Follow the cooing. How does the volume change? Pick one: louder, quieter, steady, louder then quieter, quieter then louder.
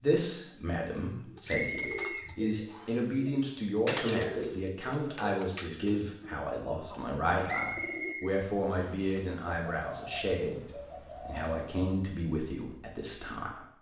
louder then quieter.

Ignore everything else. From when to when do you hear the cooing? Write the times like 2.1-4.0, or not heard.
1.2-12.2.